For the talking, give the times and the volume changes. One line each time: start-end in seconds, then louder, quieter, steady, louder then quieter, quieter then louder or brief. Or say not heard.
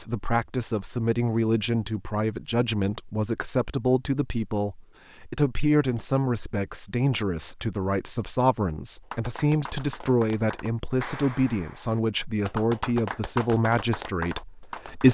0.0-15.0 steady.